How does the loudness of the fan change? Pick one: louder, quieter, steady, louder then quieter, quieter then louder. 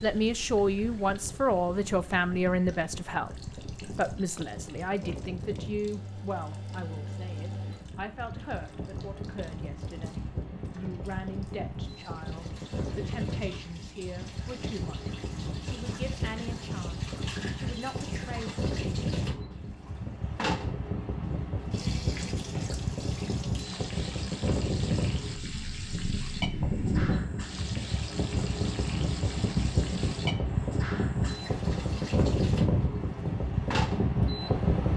louder.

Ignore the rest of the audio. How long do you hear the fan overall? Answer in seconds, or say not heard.
35 s.